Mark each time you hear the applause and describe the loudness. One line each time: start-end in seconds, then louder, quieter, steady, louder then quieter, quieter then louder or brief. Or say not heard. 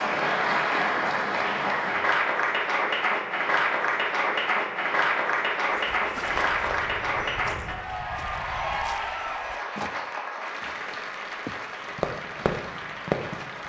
0.0-13.6 quieter.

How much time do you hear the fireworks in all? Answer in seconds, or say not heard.
2 s.